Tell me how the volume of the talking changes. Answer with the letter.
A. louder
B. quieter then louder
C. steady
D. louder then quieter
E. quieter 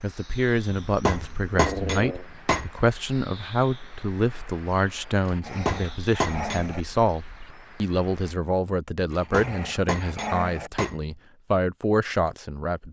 C.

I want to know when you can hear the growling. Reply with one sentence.
The growling can be heard from 1.5 to 2.2 s, from 5.2 to 6.8 s and from 9.1 to 10.7 s.